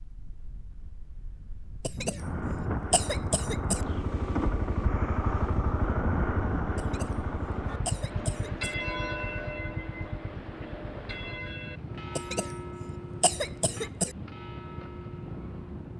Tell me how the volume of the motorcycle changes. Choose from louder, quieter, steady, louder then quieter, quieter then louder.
quieter.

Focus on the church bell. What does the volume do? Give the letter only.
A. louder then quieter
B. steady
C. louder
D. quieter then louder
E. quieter
E.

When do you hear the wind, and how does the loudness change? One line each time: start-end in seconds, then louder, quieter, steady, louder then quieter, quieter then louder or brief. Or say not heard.
0.0-15.9 steady.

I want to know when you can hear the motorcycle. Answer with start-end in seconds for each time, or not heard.
2.1-15.9.